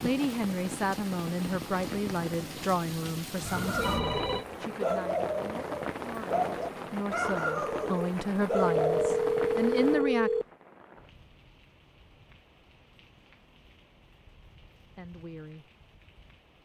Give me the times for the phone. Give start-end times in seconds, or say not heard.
3.4-4.5, 8.6-10.4.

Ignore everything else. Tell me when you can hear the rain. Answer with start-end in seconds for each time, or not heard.
0.0-16.5.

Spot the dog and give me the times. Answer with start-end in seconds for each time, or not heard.
3.5-9.1.